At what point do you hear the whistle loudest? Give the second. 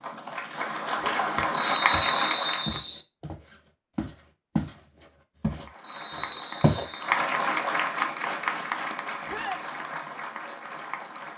2 s.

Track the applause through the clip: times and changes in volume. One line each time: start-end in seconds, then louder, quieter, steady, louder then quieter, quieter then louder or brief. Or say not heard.
0.0-2.8 brief
5.7-11.3 louder then quieter.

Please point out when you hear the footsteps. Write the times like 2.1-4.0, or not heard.
1.4-4.8, 5.4-6.8.